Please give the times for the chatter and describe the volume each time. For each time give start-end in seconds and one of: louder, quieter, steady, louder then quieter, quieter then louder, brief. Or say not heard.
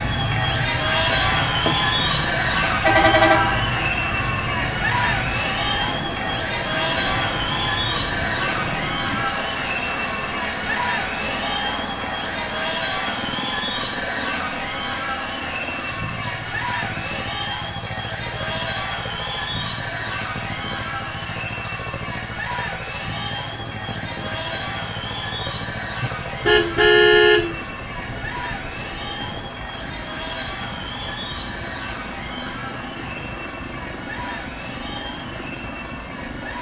0.0-36.5 quieter.